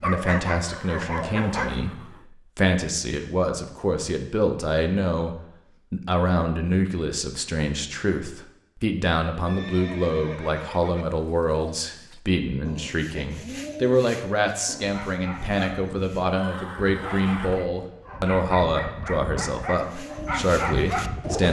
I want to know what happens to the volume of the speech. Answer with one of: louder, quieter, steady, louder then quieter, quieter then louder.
steady.